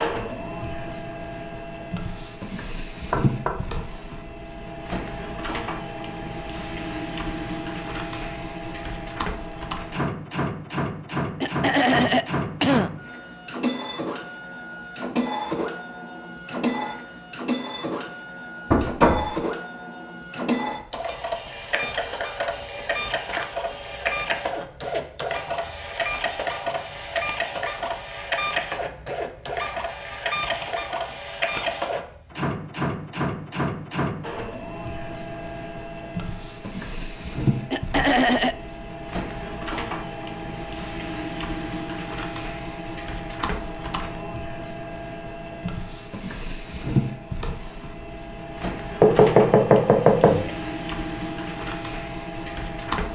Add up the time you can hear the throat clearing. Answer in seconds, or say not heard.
2 s.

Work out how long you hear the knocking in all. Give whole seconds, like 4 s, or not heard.
3 s.